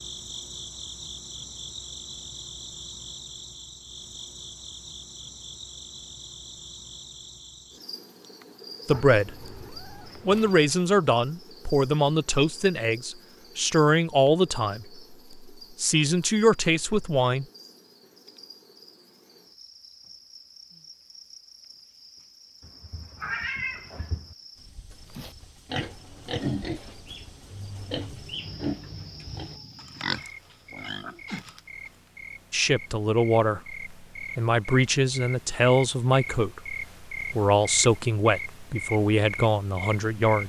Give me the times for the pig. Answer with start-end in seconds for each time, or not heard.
25.1-31.6.